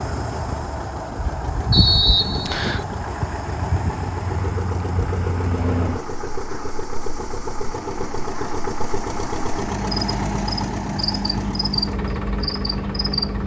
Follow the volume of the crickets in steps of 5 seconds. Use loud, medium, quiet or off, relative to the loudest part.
loud, medium, loud.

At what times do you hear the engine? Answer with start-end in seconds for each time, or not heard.
0.0-13.4.